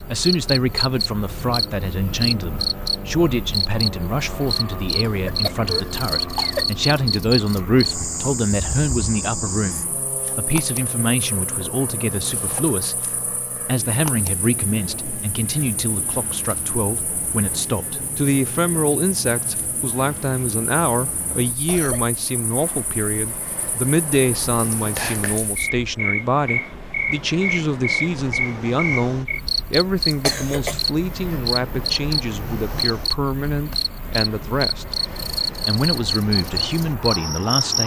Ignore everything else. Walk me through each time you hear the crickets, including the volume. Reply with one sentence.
The crickets can be heard from 0.0 to 37.8 s, getting quieter then louder.